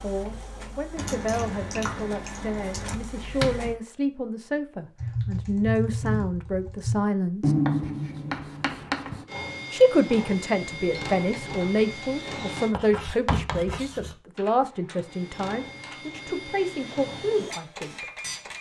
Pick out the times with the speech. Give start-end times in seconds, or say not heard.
0.0-7.5, 9.7-18.1.